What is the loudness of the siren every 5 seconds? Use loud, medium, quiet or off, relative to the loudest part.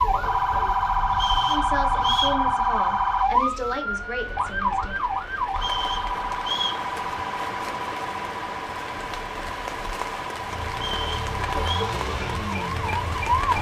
loud, medium, medium.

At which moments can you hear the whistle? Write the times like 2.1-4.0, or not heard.
1.1-2.4, 5.5-6.8, 10.7-11.8.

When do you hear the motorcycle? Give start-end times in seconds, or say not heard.
10.3-13.2.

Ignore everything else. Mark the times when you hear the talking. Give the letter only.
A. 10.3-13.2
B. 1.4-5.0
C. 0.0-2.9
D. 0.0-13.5
B.